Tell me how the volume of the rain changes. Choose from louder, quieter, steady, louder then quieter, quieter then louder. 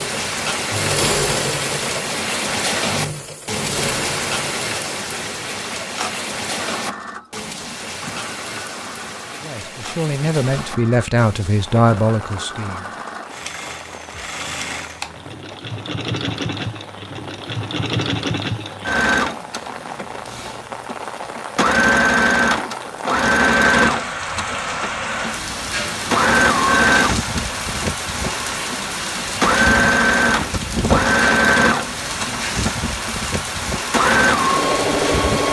quieter then louder.